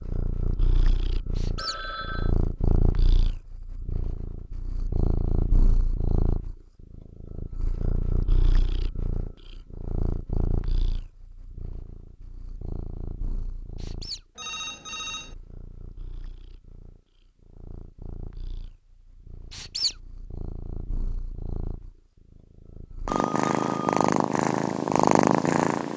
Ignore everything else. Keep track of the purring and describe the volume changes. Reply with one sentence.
The volume of the purring goes down, then up.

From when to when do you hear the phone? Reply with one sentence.
You can hear the phone from 1.6 to 2.4 s, from 14.3 to 15.3 s and from 23.1 to 24.1 s.